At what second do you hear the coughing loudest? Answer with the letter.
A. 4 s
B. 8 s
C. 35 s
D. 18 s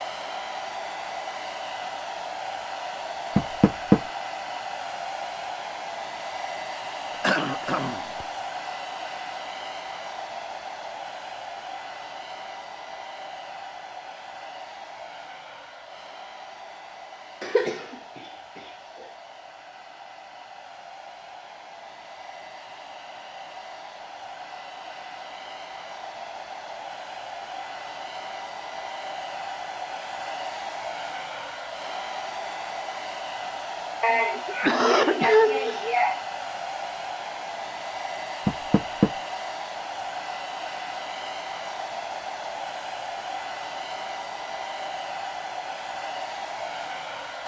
C.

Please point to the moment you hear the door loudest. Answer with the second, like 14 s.
4 s.